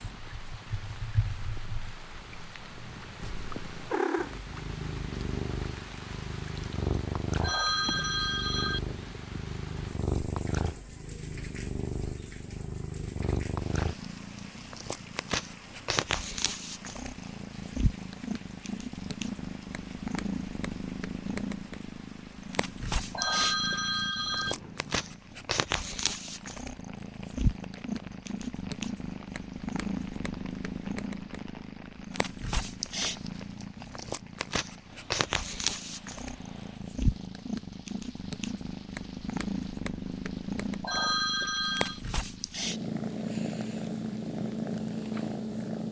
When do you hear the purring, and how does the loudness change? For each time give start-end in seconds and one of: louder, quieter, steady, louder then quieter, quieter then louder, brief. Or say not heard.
0.0-45.8 steady.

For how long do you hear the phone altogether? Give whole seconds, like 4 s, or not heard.
4 s.